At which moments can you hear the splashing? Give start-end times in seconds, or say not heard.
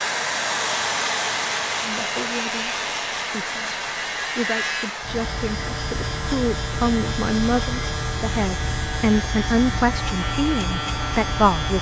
not heard.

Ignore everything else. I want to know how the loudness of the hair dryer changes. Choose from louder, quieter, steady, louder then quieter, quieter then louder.
quieter.